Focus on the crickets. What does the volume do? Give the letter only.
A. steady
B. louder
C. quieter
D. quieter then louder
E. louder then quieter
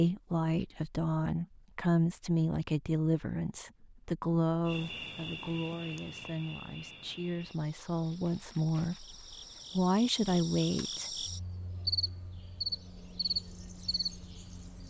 D.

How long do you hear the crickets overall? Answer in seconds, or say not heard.
10 s.